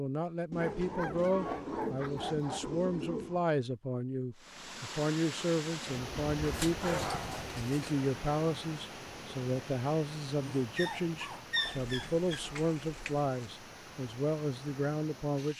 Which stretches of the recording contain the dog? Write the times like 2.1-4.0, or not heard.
0.6-2.6, 6.4-8.0, 10.4-12.4.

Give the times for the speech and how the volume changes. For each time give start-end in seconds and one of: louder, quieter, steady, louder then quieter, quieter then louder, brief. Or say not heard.
0.0-15.5 steady.